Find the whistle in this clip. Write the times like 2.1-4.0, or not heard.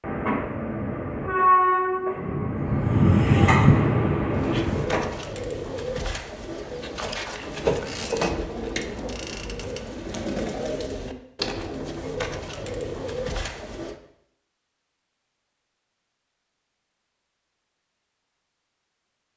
not heard.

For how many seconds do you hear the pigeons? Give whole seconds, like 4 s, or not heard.
10 s.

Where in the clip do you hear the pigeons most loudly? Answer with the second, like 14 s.
8 s.